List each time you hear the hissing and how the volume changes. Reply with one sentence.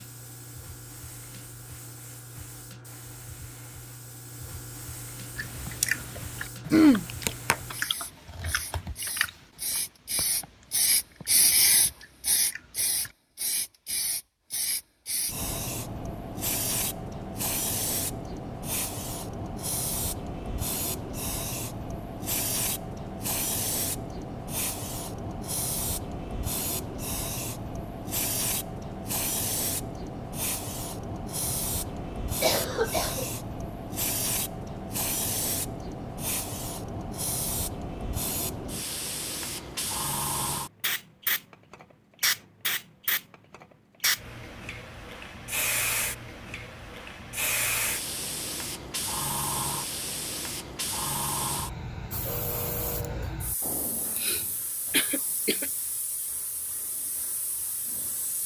You can hear the hissing from 0.0 to 58.4 s, at a steady volume.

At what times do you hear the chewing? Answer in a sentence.
You can hear the chewing from 5.3 to 13.2 s.